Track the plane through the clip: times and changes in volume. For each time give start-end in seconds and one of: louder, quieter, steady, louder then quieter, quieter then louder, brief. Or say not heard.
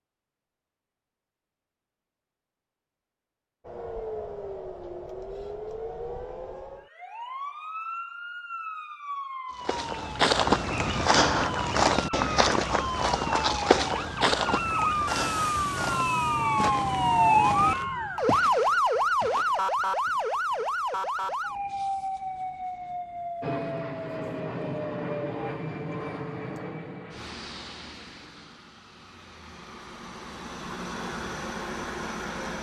23.4-32.5 quieter then louder.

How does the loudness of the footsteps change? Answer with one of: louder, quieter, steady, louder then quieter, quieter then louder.
quieter.